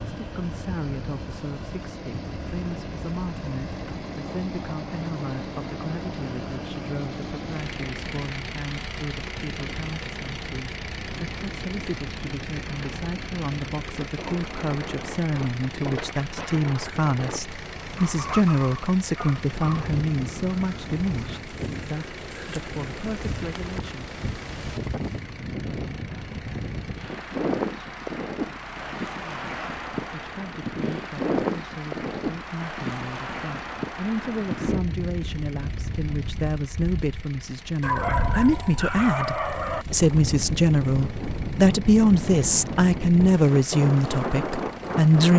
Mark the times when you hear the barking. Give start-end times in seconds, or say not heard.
17.9-19.9, 37.8-39.9.